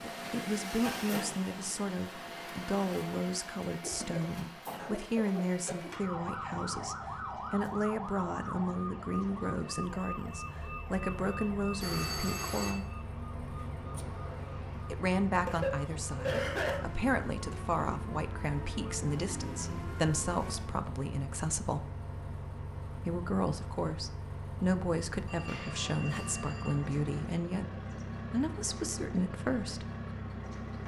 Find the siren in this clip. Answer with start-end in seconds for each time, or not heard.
5.9-20.8.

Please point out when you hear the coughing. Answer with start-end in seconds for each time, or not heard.
3.8-5.9, 15.4-16.8.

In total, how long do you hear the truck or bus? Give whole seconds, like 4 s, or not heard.
31 s.